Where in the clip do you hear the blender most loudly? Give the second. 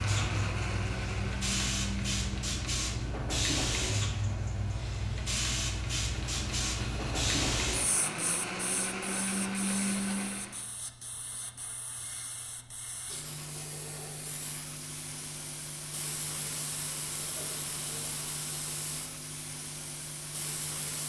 10 s.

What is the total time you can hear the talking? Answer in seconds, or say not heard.
not heard.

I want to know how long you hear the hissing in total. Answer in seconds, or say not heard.
21 s.